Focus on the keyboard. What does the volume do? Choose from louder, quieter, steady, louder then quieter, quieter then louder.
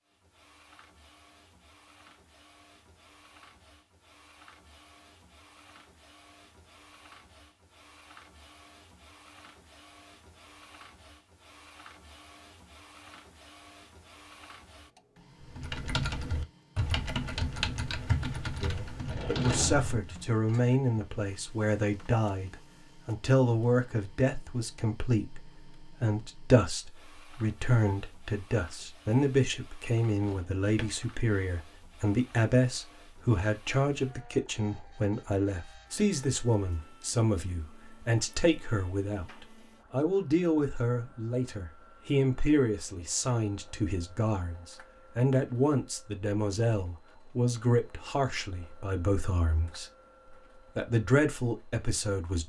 quieter.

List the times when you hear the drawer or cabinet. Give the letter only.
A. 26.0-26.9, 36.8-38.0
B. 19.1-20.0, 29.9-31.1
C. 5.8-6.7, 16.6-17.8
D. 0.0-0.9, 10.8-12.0
B.